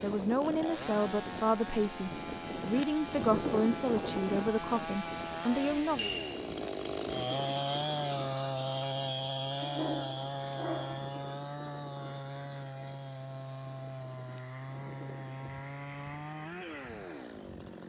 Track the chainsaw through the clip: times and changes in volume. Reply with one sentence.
The chainsaw can be heard from 0.0 to 17.8 s, getting louder then quieter.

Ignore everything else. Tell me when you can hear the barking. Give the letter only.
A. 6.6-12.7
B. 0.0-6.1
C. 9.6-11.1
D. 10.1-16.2
C.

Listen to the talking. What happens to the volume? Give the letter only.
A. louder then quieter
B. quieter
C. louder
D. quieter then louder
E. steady
E.